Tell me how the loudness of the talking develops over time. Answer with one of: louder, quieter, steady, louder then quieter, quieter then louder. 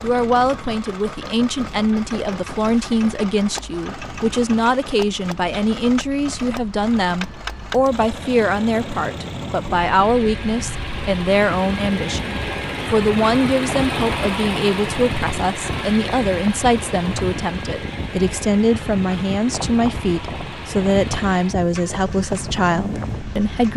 steady.